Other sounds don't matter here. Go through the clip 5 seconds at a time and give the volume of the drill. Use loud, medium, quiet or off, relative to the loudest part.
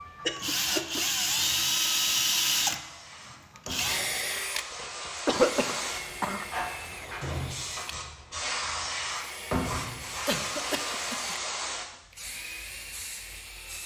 loud, quiet, quiet.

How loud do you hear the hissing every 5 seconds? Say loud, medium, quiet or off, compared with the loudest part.
medium, loud, loud.